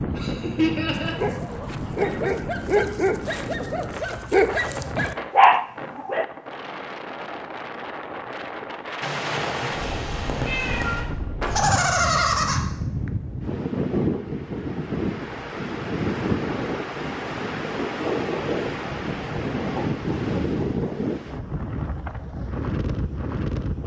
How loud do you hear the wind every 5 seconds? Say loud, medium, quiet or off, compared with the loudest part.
medium, medium, loud, loud, loud.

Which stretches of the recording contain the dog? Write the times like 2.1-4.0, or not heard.
0.9-6.2.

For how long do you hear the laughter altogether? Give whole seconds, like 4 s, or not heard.
3 s.